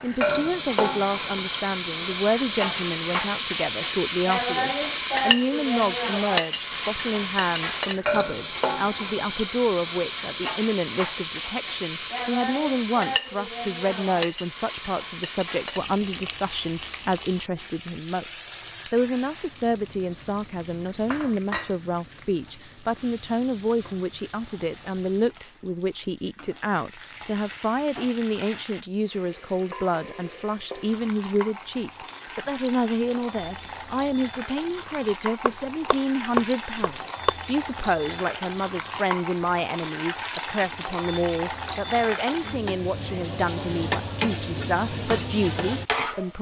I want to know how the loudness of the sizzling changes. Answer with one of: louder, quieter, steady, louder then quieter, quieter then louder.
quieter then louder.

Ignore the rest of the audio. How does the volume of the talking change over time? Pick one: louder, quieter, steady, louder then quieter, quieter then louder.
steady.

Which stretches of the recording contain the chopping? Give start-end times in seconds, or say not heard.
35.5-37.3.